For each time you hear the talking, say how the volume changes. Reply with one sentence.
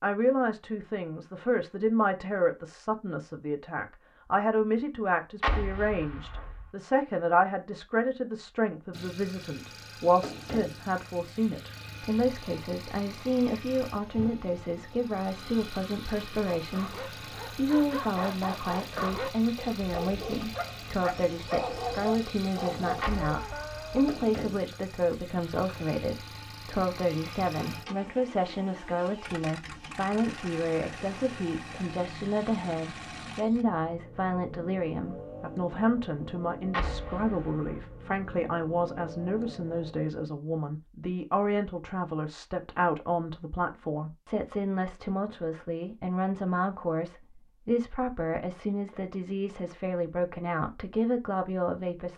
You can hear the talking from 0.0 to 52.1 s, at a steady volume.